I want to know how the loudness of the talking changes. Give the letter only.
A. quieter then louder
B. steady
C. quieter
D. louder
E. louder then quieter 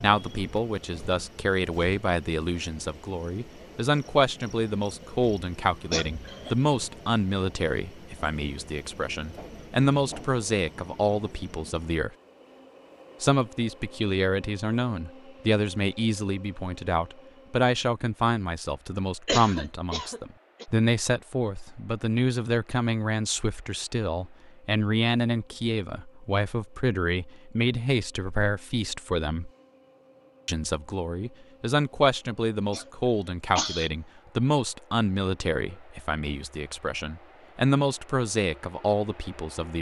B.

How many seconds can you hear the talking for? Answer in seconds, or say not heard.
38 s.